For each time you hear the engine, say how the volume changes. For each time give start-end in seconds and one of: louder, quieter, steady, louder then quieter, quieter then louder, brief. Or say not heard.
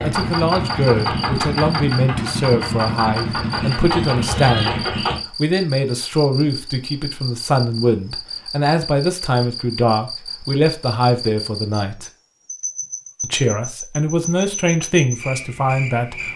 0.0-5.2 steady.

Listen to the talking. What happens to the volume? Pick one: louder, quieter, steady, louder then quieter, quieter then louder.
steady.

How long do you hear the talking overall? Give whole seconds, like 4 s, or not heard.
15 s.